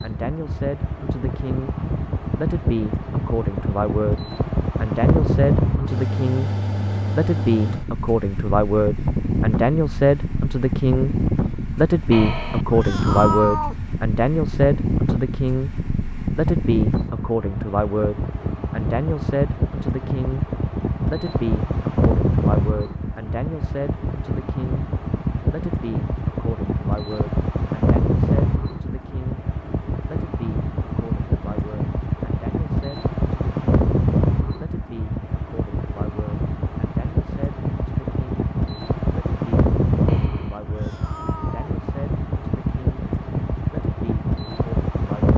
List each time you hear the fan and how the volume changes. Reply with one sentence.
You can hear the fan from 0.0 to 45.3 s, at a steady volume.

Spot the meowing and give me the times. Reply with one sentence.
The meowing can be heard from 12.1 to 13.8 s and from 40.0 to 41.8 s.